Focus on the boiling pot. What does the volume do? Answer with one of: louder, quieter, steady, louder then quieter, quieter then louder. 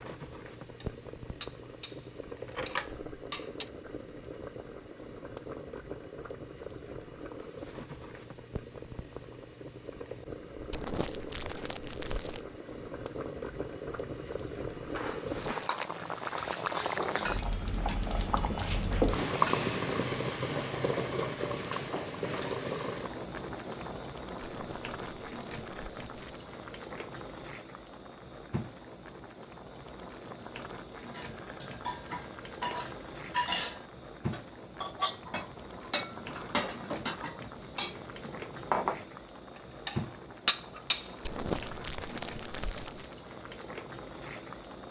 louder then quieter.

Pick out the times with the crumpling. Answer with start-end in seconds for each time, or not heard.
10.7-12.4, 24.5-26.4, 41.2-43.1.